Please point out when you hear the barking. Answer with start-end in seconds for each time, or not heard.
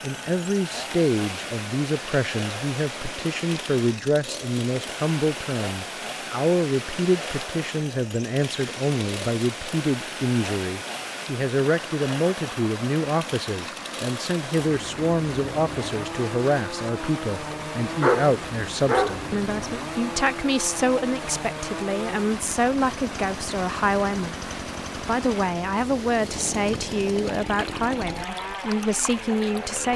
17.5-19.2.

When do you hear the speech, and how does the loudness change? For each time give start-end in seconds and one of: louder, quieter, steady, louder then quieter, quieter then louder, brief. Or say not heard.
0.0-29.9 steady.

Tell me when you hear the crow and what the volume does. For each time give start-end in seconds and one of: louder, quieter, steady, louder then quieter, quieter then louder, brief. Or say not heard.
not heard.